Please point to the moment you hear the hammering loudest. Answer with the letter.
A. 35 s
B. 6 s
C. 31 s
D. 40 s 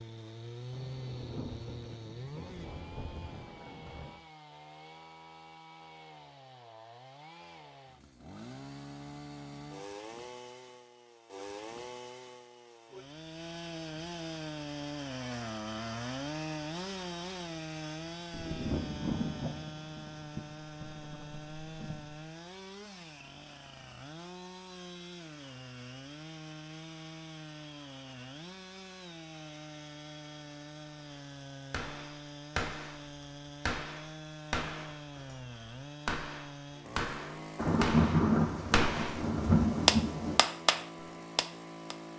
D.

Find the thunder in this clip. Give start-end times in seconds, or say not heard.
0.7-4.2, 18.3-22.1, 37.5-40.4.